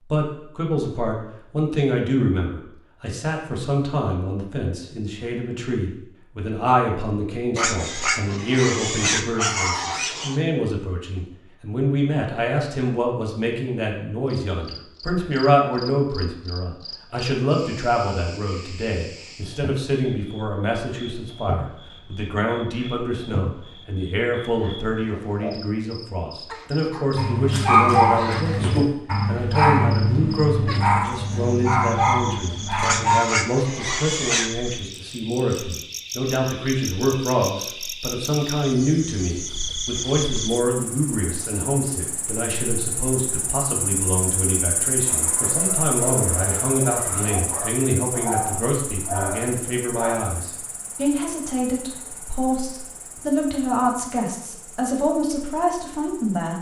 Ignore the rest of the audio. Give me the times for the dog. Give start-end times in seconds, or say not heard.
27.1-33.2, 45.0-50.1.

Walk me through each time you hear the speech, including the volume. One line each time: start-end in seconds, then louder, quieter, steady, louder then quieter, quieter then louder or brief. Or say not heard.
0.1-56.5 steady.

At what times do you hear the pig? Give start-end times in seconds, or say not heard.
7.5-10.4, 32.8-34.5.